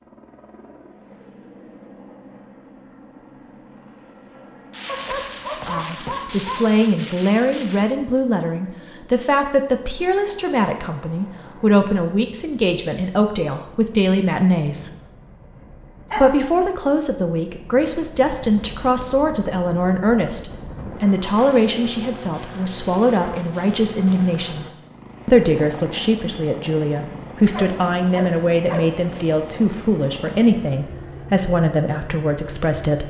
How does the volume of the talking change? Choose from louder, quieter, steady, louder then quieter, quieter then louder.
steady.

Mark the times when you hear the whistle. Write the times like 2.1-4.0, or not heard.
not heard.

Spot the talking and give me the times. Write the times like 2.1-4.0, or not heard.
5.7-14.9, 16.1-33.0.